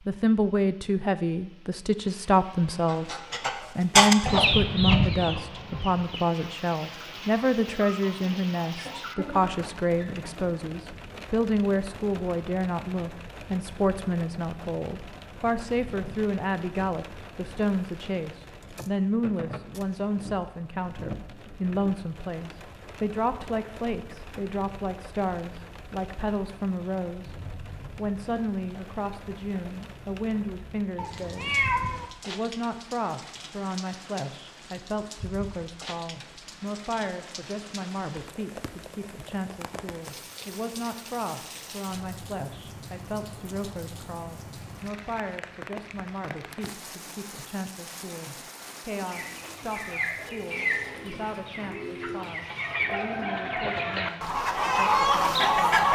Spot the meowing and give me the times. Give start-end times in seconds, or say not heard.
30.9-32.0.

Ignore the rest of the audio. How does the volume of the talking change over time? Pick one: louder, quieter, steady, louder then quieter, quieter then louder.
quieter.